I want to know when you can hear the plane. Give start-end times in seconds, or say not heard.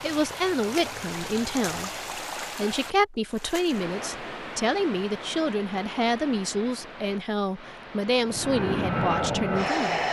0.0-2.1, 8.2-10.0.